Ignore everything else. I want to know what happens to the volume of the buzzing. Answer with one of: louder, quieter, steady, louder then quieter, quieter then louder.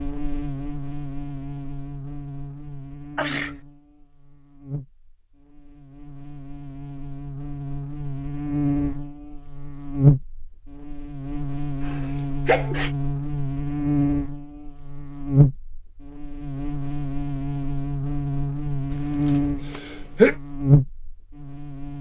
louder.